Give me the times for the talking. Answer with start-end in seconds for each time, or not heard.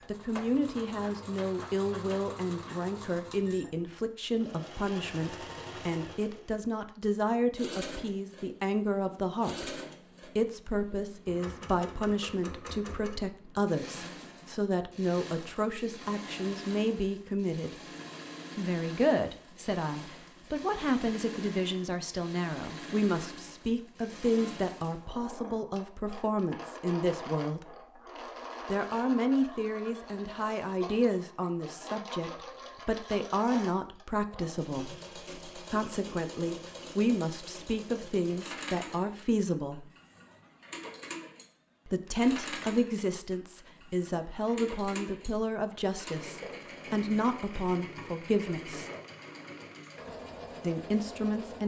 0.1-17.9, 18.6-27.9, 28.7-39.9, 41.9-48.9, 50.6-51.6.